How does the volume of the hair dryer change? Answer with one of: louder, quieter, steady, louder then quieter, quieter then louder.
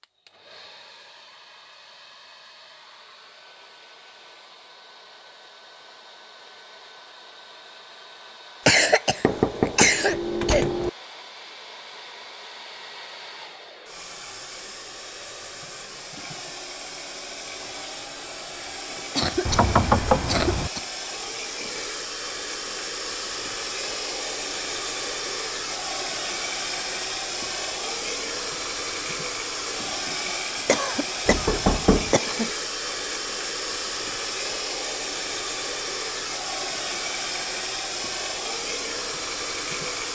louder.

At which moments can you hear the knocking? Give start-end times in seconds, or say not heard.
9.2-10.9, 19.4-20.7, 31.2-32.1.